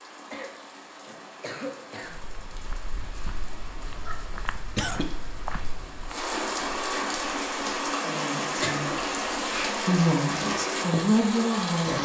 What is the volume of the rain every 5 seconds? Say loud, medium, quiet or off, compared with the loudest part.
quiet, loud, loud.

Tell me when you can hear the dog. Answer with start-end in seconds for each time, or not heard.
not heard.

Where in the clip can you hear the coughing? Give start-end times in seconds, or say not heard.
0.3-2.2, 4.0-5.0, 8.6-9.7.